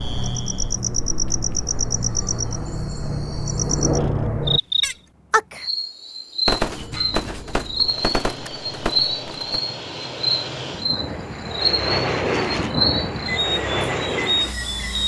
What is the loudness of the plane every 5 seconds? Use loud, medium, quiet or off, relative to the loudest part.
loud, medium, loud.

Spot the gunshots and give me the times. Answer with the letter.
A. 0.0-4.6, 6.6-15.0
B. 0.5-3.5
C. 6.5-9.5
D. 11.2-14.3
C.